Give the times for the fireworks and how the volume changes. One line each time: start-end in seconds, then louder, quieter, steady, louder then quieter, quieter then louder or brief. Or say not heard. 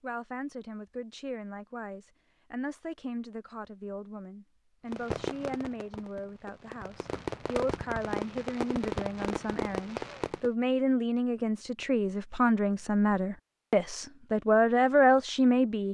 4.9-10.5 louder.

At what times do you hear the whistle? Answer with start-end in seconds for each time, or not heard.
not heard.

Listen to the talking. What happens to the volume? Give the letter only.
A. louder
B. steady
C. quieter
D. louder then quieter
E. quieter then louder
A.